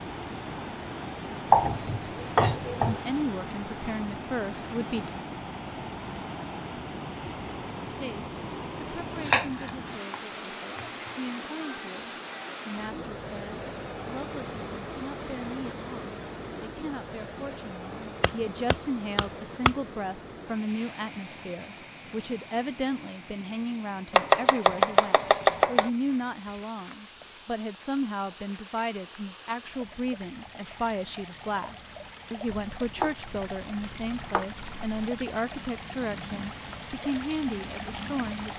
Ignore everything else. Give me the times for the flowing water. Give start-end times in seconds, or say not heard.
0.0-38.5.